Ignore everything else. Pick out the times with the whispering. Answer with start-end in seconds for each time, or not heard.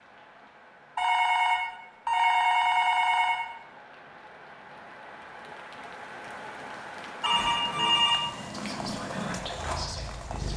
8.5-10.5.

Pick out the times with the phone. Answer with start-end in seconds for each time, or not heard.
0.9-3.4, 7.2-8.2.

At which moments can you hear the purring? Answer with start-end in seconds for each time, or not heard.
7.2-10.5.